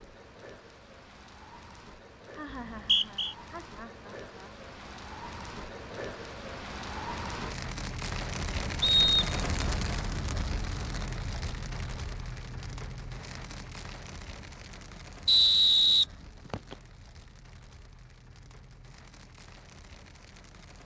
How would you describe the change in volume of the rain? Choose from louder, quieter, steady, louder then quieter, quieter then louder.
louder then quieter.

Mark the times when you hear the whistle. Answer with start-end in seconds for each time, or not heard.
2.5-3.4, 8.8-9.3, 15.2-16.8.